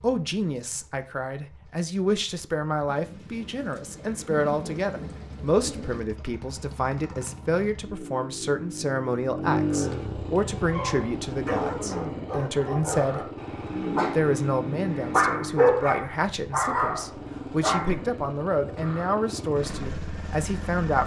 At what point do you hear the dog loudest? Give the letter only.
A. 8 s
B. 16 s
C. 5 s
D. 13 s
B.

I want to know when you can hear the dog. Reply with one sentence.
The dog can be heard from 10.7 to 18.1 s.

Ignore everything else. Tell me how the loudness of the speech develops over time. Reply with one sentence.
The loudness of the speech stays about the same.